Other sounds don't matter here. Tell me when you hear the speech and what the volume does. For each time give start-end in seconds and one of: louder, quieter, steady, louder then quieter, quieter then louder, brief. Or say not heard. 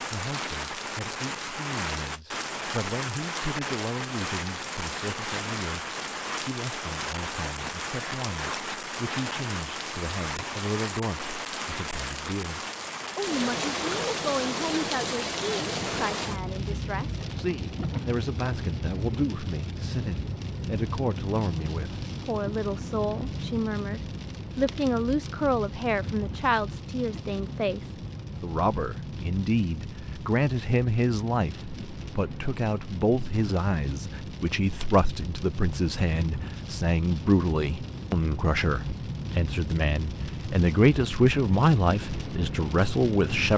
0.0-43.5 louder.